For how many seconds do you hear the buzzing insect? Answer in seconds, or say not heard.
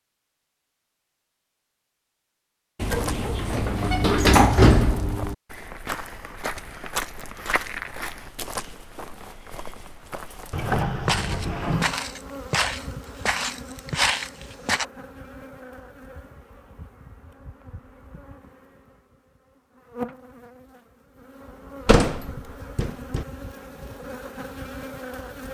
14 s.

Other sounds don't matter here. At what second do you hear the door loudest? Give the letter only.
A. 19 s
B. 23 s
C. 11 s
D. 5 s
D.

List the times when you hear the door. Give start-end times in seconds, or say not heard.
2.8-5.3, 10.5-12.0, 21.9-23.2.